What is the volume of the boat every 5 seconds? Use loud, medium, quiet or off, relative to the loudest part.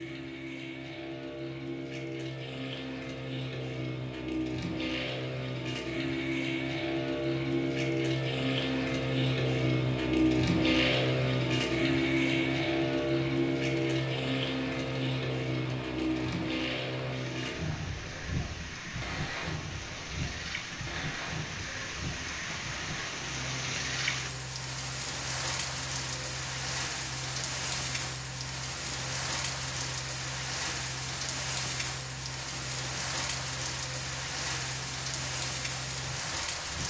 medium, loud, loud, medium, quiet, quiet, quiet, quiet.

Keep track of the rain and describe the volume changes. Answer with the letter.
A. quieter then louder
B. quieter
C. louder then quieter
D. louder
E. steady
D.